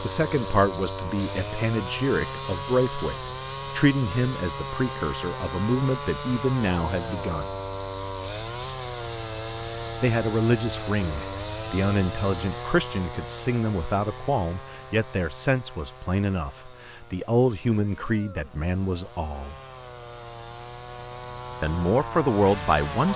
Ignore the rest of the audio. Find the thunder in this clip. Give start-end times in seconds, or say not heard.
not heard.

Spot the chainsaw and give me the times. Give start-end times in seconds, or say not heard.
0.0-23.1.